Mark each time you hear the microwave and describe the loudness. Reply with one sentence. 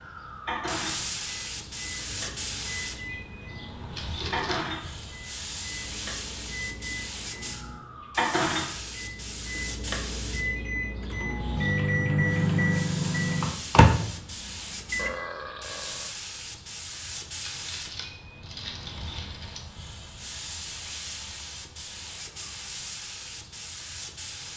The microwave can be heard from 0.5 to 15.2 s, getting louder.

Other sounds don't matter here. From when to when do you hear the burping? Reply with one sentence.
The burping can be heard from 4.0 to 4.7 s and from 14.9 to 16.1 s.